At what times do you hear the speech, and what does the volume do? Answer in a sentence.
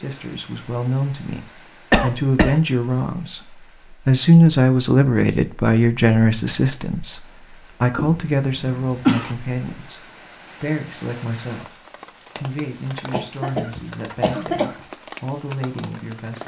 You can hear the speech from 0.0 to 16.4 s, getting louder then quieter.